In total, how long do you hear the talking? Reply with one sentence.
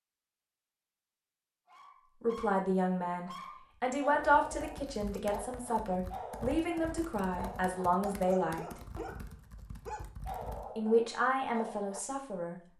The talking can be heard for 9 seconds in total.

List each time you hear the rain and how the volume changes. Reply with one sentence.
The rain can't be heard in this clip.